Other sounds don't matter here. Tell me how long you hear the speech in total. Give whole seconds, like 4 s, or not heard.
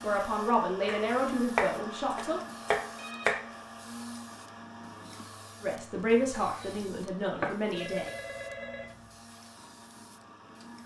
5 s.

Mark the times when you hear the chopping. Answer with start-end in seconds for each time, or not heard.
0.8-3.5, 5.9-7.5.